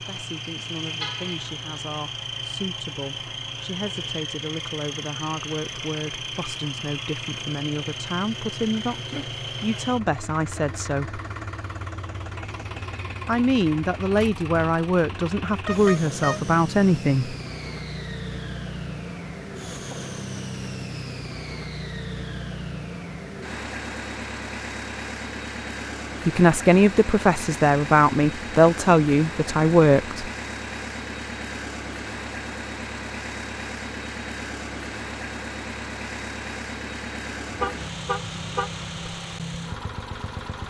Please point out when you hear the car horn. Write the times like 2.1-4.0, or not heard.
1.0-1.5, 15.5-16.5, 37.5-39.1.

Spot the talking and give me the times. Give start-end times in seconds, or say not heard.
0.0-11.2, 13.2-17.4, 26.2-30.2.